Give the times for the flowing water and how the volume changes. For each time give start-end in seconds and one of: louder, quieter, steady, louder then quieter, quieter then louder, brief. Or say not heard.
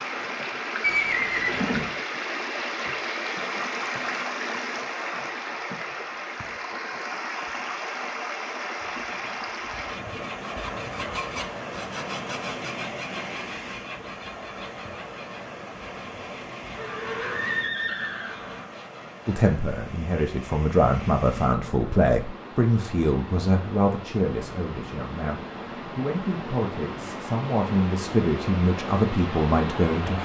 0.0-30.2 quieter then louder.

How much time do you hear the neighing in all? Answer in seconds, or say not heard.
3 s.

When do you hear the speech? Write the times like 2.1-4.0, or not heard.
19.2-30.2.